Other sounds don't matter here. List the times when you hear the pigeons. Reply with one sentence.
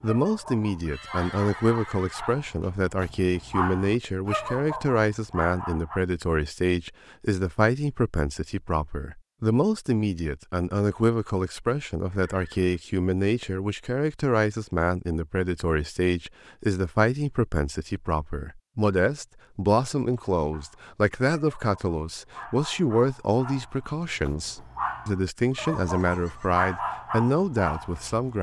The pigeons can't be heard in this clip.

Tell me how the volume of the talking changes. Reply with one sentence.
The loudness of the talking stays about the same.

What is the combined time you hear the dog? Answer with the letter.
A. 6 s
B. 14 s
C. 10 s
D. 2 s
B.